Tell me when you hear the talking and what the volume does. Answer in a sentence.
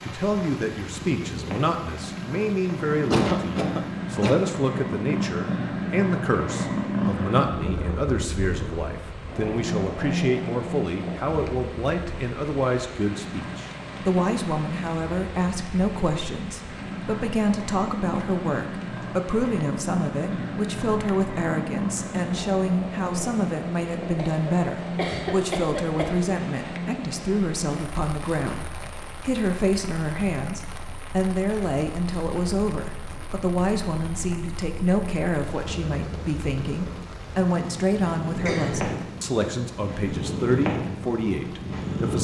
The talking can be heard from 0.0 to 42.2 s, at a steady volume.